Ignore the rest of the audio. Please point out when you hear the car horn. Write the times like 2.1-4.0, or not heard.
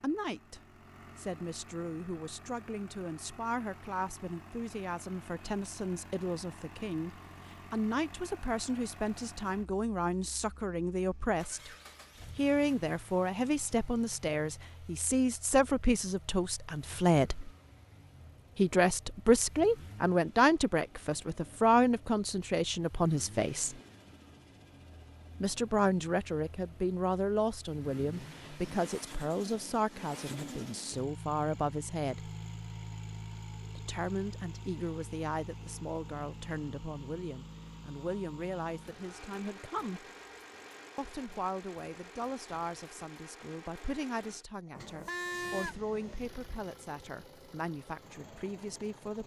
44.7-46.2.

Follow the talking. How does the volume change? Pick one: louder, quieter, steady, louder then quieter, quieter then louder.
louder then quieter.